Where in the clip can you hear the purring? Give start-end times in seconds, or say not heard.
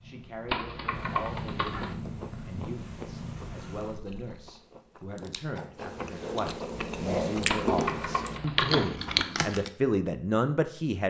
0.0-4.5.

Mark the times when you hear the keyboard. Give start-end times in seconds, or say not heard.
0.5-1.9, 7.5-8.9.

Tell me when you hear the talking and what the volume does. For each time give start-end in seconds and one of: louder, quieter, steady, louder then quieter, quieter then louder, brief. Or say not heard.
0.0-11.0 louder.